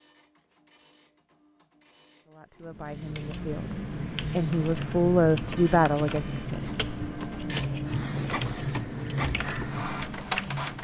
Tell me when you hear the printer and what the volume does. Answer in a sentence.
You can hear the printer from 0.0 to 10.7 s, getting louder.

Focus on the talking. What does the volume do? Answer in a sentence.
The loudness of the talking goes up.